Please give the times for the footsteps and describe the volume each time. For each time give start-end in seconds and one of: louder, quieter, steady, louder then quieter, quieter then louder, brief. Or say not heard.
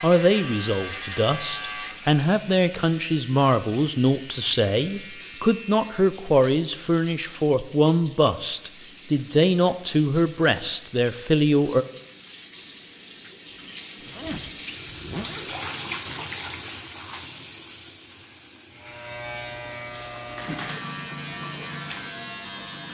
not heard.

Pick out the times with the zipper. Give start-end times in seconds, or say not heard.
14.0-15.6.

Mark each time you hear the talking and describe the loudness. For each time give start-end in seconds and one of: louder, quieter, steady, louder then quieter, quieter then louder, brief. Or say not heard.
0.0-11.8 steady.